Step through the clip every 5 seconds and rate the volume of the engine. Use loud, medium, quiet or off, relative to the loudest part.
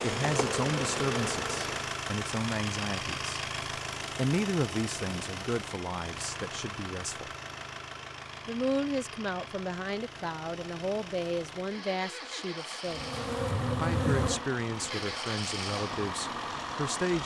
loud, medium, medium, loud.